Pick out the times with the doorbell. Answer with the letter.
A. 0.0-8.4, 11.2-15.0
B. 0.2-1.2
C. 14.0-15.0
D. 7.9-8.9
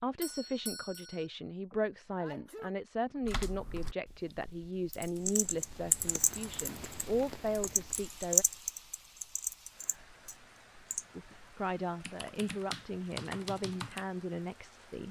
B.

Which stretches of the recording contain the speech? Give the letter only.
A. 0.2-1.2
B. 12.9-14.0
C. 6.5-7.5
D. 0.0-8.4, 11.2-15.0
D.